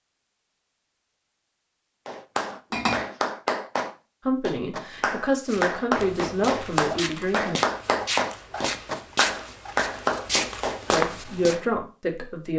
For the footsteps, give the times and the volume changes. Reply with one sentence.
You can hear the footsteps from 5.5 to 11.6 s, getting louder.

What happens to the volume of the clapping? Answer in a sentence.
The volume of the clapping stays about the same.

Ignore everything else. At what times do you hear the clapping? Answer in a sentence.
The clapping can be heard from 2.0 to 11.7 s.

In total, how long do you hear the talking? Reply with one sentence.
You can hear the talking for 5 seconds altogether.